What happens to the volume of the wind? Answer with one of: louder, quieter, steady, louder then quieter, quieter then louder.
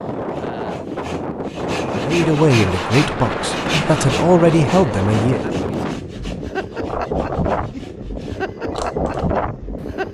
steady.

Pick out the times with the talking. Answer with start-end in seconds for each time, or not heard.
1.9-5.5.